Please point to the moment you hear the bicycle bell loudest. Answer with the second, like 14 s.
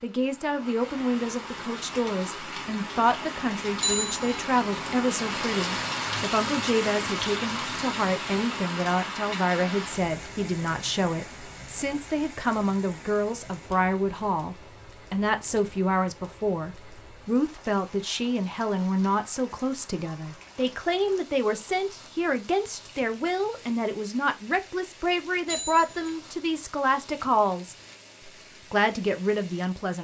4 s.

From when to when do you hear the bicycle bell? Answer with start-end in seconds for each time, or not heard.
3.8-4.5, 25.4-26.1.